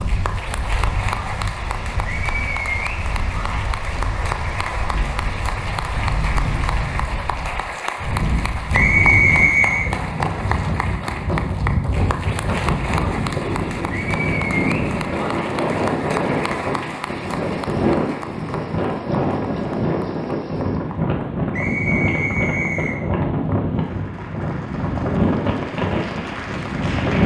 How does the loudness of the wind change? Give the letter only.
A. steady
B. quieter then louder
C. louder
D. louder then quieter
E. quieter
C.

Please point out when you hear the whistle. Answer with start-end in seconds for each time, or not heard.
8.7-9.9, 21.5-23.0.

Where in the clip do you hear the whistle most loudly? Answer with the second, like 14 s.
9 s.